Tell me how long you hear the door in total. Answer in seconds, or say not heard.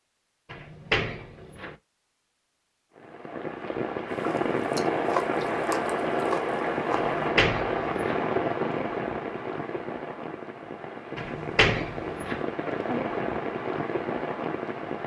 4 s.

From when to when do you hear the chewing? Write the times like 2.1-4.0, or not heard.
4.2-7.2.